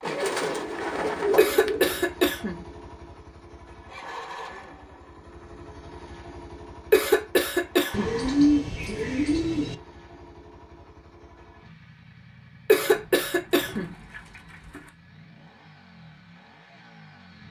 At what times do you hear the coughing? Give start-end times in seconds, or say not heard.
1.4-2.6, 6.9-8.2, 12.7-13.9.